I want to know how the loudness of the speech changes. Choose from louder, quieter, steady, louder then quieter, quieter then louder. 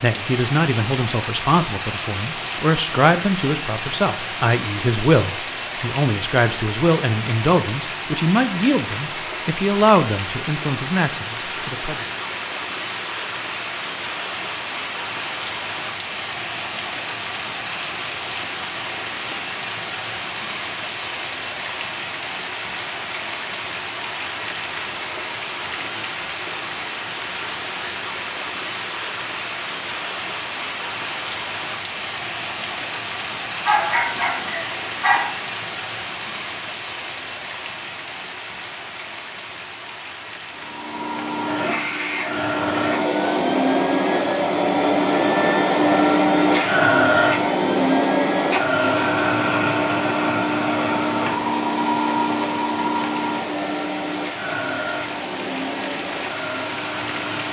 steady.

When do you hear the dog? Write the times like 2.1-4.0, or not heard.
33.6-35.2.